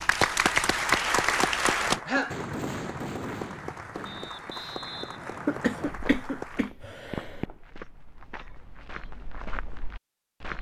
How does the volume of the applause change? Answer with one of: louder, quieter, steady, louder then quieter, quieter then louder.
quieter.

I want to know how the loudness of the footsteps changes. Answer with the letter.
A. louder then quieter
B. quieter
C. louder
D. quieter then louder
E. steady
C.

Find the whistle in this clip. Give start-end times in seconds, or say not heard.
4.0-6.0.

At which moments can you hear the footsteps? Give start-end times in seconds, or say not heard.
5.8-10.5.